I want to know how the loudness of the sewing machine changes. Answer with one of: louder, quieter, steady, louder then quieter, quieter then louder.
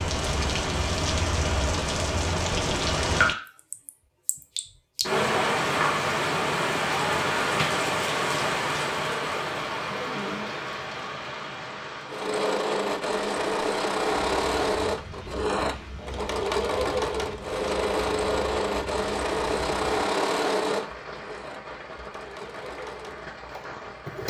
quieter.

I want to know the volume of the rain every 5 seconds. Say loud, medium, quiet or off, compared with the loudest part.
loud, loud, medium, quiet, quiet.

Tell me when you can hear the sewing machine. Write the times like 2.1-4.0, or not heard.
12.1-24.2.